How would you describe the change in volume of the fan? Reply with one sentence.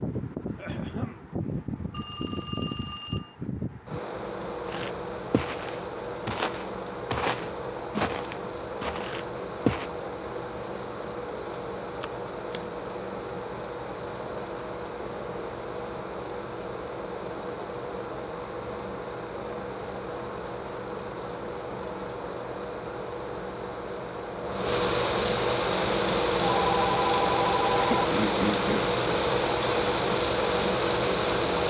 The loudness of the fan goes up.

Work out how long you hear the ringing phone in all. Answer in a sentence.
The ringing phone can be heard for 4 seconds in total.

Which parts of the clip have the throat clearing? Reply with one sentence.
The throat clearing can be heard from 0.6 to 1.2 s and from 27.7 to 28.9 s.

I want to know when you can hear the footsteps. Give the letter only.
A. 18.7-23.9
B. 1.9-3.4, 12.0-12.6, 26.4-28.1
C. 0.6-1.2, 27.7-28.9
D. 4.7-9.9
D.